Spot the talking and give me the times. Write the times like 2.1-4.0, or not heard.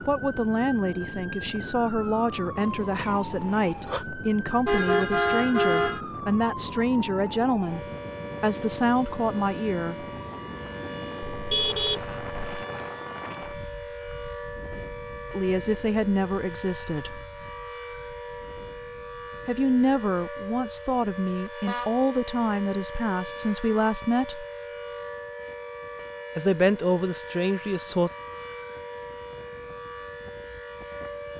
0.1-10.1, 15.3-17.2, 19.4-24.4, 26.4-28.1.